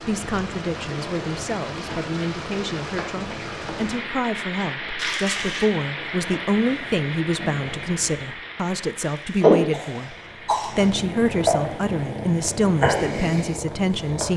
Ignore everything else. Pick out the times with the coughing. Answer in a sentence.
You can hear the coughing from 5.0 to 5.7 s and from 9.0 to 10.9 s.